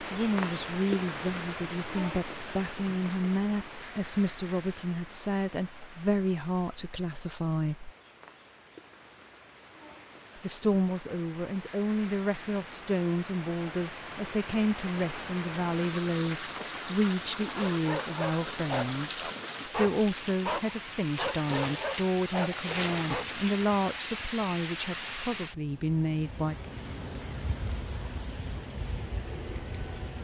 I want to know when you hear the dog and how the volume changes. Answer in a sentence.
The dog can be heard from 17.6 to 23.4 s, at a steady volume.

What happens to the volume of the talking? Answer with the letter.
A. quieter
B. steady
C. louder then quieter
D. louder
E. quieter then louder
B.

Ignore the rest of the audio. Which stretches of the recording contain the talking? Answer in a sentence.
The talking can be heard from 0.0 to 7.9 s and from 10.3 to 26.6 s.